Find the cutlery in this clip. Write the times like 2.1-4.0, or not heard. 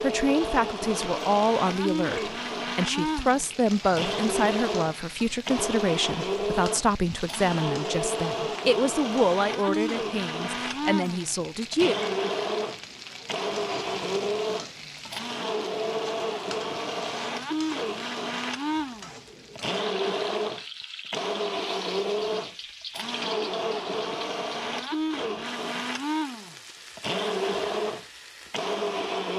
not heard.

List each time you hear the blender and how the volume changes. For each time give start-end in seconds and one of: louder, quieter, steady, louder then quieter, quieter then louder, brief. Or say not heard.
0.0-29.3 steady.